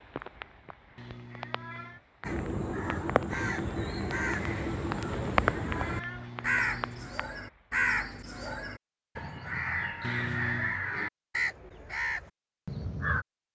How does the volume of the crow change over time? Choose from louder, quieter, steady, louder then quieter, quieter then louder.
steady.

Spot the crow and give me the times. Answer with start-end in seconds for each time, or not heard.
2.2-13.2.